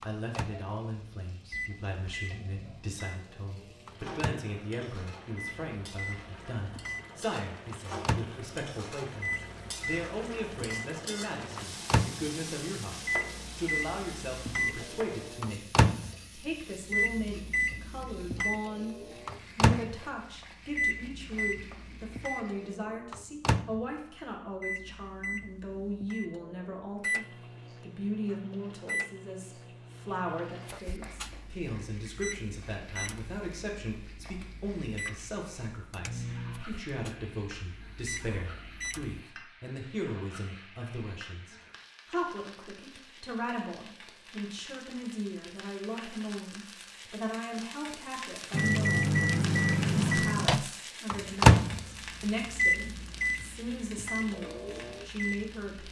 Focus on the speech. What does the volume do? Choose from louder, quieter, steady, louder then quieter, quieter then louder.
steady.